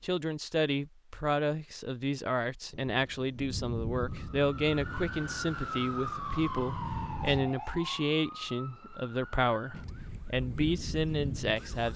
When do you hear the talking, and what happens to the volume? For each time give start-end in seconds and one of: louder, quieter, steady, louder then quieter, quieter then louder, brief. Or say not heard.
0.0-11.9 steady.